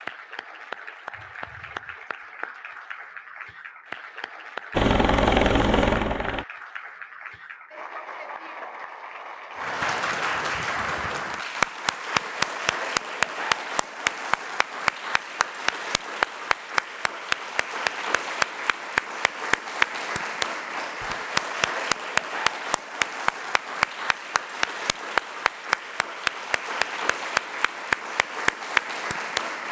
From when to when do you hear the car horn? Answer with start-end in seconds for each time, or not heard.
not heard.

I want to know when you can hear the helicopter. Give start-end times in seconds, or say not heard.
4.7-6.5.